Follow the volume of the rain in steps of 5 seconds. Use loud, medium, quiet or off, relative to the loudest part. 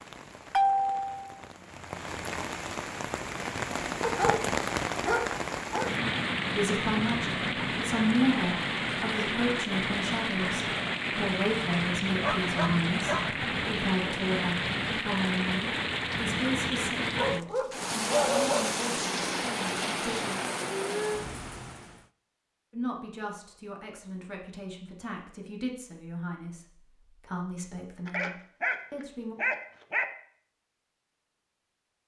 loud, loud, loud, loud, loud, off, off.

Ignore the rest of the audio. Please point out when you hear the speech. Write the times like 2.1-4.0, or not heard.
6.5-20.4, 22.7-29.4.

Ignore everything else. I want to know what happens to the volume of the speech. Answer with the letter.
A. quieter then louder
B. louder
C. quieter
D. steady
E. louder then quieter
C.